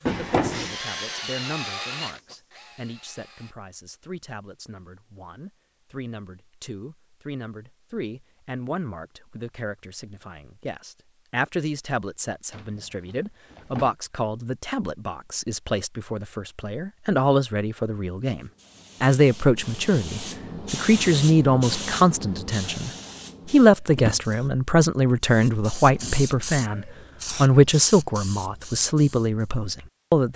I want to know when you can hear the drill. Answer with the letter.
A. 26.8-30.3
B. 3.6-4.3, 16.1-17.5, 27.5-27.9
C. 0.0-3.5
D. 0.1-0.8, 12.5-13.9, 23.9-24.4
C.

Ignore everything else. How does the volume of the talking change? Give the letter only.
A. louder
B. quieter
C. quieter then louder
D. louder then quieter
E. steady
A.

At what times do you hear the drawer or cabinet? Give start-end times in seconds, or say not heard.
0.1-0.8, 12.5-13.9, 23.9-24.4.